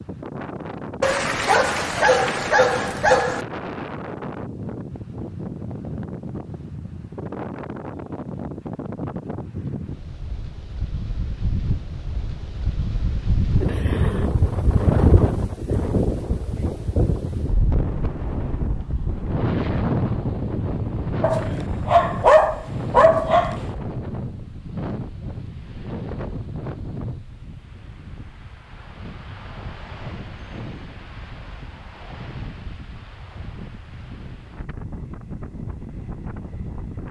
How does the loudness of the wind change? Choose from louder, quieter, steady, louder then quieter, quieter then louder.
louder then quieter.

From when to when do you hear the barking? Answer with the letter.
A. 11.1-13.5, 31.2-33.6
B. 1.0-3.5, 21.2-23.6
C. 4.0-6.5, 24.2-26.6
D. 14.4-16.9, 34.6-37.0
B.